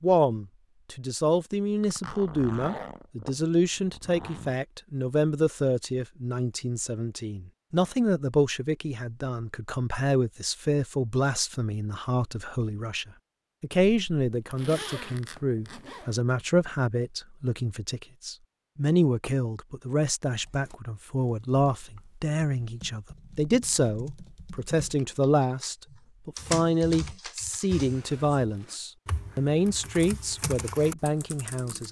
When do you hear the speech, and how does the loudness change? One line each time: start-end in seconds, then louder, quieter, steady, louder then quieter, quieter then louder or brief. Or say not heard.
0.0-31.8 steady.